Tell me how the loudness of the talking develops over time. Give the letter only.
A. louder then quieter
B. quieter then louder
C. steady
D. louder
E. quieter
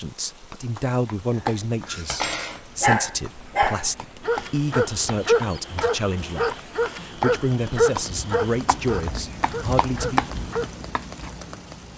C.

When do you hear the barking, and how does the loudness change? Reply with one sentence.
You can hear the barking from 1.4 to 10.7 s, getting quieter.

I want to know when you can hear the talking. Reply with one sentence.
You can hear the talking from 0.0 to 10.3 s.